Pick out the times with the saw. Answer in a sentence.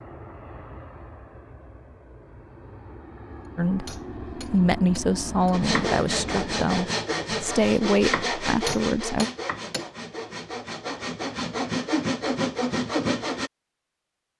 The saw can be heard from 5.5 to 13.5 s.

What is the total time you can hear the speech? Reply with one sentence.
You can hear the speech for 6 seconds altogether.